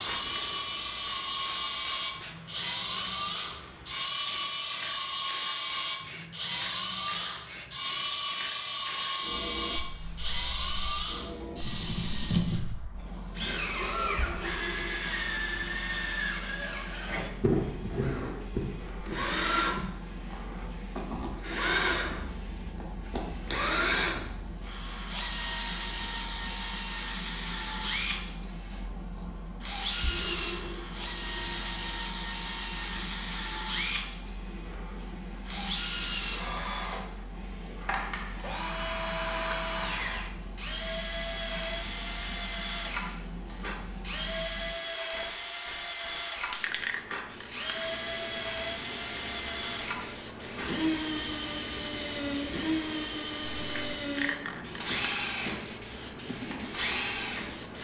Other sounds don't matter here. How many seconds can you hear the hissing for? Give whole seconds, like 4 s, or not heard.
58 s.